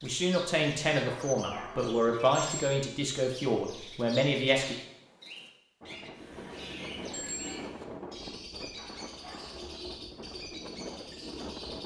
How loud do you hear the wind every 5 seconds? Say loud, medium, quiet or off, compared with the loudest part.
off, loud, loud.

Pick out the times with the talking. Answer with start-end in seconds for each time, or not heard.
0.0-4.8.